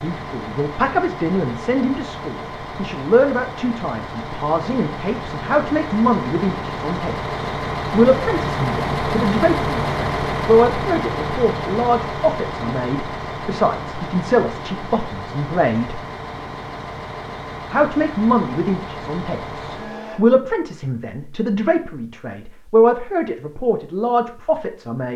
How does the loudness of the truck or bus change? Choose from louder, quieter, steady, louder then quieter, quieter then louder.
louder then quieter.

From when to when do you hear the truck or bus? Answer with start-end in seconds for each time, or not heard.
0.0-20.2.